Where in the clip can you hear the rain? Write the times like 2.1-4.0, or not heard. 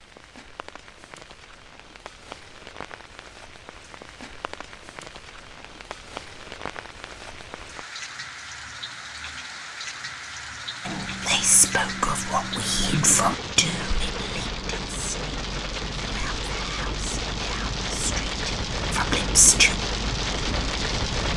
0.0-21.3.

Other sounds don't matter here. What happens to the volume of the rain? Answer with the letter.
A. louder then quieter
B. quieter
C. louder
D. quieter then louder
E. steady
C.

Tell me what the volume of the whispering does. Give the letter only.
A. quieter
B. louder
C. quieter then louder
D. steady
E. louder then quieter
C.